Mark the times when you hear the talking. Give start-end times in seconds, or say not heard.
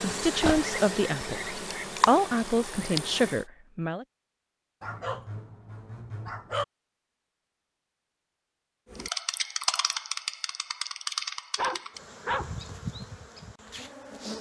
0.0-4.0.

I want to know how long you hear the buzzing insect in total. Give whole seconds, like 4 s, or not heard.
9 s.